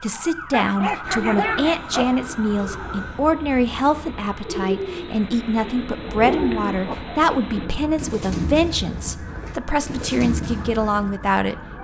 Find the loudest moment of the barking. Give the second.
1 s.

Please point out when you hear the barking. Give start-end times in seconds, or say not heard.
0.5-2.1, 6.2-7.0.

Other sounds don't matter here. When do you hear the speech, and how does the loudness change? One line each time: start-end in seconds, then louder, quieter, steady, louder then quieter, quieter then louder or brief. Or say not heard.
0.0-11.6 steady.